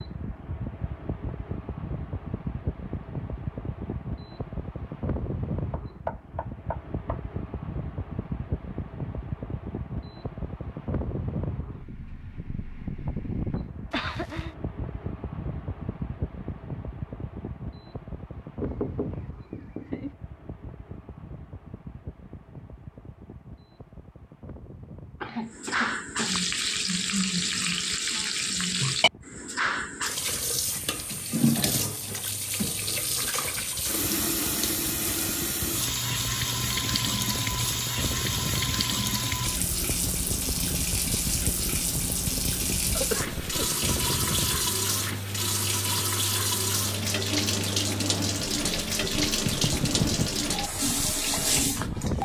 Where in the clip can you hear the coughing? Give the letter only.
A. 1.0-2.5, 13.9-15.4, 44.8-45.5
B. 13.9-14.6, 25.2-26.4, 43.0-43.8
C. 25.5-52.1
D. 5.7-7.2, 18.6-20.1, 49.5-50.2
B.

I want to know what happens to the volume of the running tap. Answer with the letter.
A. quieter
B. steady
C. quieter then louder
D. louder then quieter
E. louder
B.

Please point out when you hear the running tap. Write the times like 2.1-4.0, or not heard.
25.5-52.1.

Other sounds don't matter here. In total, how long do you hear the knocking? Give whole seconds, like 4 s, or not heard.
4 s.